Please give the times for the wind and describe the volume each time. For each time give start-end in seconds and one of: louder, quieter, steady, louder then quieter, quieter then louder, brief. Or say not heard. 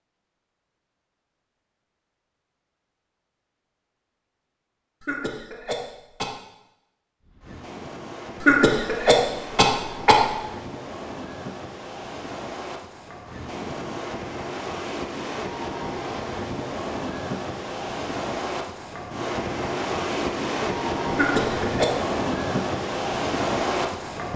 7.2-24.3 louder.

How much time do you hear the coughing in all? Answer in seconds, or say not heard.
4 s.